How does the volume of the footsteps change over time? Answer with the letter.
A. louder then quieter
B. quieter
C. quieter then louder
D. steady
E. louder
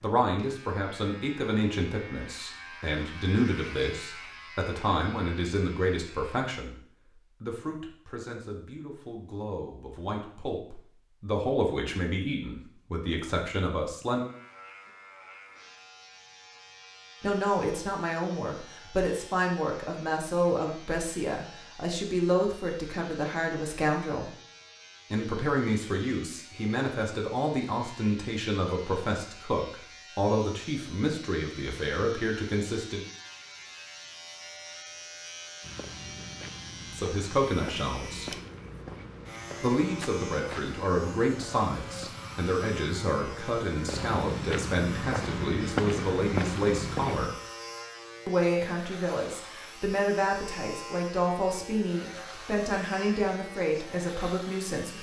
E.